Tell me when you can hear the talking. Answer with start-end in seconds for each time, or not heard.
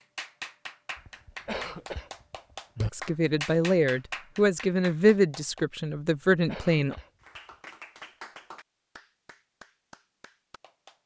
2.9-7.0.